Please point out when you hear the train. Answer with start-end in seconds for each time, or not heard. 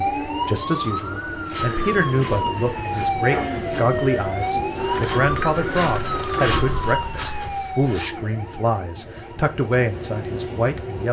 0.0-11.0.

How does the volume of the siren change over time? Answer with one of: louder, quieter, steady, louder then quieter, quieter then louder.
quieter.